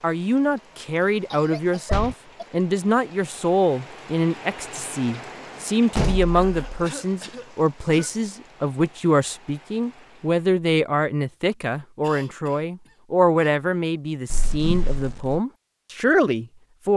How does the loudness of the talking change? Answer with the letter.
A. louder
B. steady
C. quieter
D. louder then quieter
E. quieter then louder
B.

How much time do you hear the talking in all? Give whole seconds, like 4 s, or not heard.
17 s.